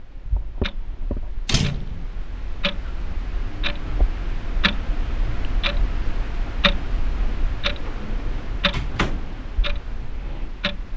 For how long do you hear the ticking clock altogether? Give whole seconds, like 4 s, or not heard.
11 s.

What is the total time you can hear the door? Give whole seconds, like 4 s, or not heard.
2 s.